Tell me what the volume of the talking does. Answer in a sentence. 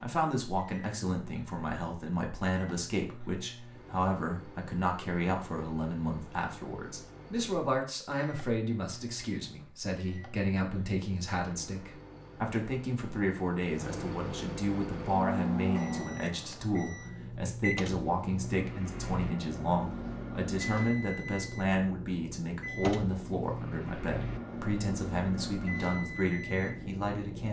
The loudness of the talking stays about the same.